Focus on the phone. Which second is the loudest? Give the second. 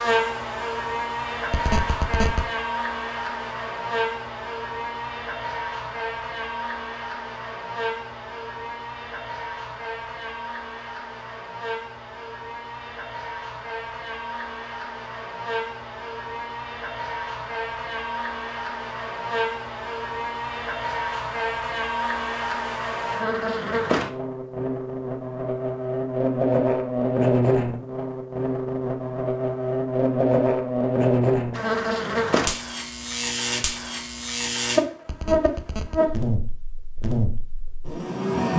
2 s.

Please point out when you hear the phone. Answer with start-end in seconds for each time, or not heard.
1.5-2.4, 35.0-36.0.